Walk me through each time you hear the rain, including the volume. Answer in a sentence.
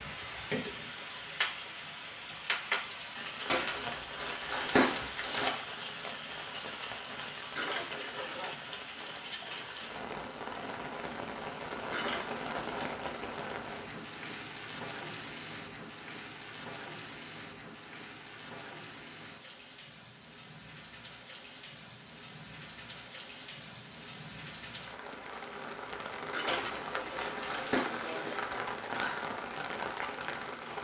You can hear the rain from 0.0 to 30.7 s, getting quieter then louder.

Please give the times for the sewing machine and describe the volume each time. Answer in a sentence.
You can't hear the sewing machine here.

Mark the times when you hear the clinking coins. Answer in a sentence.
The clinking coins can be heard from 7.5 to 8.6 s, from 11.9 to 12.9 s and from 26.3 to 28.4 s.